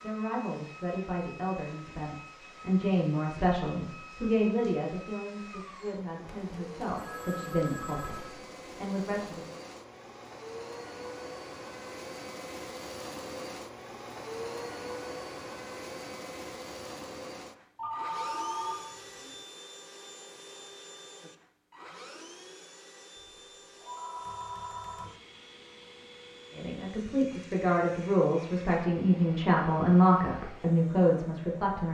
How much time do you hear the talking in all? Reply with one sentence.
The talking can be heard for 15 seconds in total.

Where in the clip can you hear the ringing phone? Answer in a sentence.
The ringing phone can be heard from 6.2 to 8.3 s, from 17.8 to 19.4 s and from 23.8 to 25.1 s.